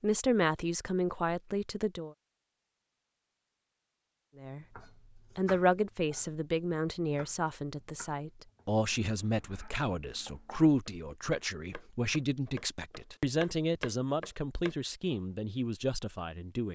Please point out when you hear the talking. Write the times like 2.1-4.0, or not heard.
0.0-2.1, 4.3-16.7.